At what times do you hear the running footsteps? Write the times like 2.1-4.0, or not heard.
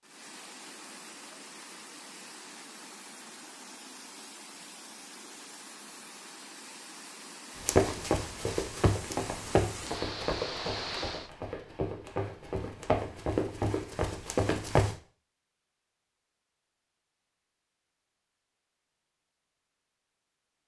7.6-14.9.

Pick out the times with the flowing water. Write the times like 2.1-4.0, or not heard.
0.0-11.3.